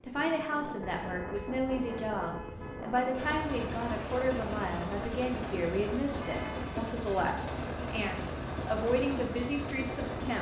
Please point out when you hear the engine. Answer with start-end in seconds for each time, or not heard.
3.1-10.3.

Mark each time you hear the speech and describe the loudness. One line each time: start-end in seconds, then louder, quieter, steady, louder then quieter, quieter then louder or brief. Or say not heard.
0.0-10.3 steady.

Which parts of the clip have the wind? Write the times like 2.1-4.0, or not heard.
0.0-10.3.